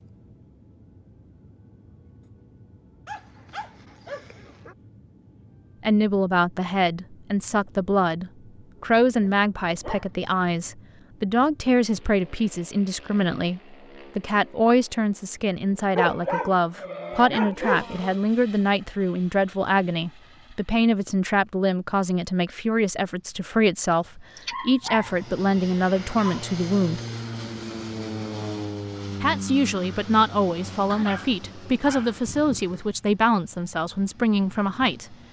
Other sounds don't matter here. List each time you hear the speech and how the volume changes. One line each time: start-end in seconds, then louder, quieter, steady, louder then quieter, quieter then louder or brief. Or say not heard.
5.8-27.0 steady
29.2-35.1 steady.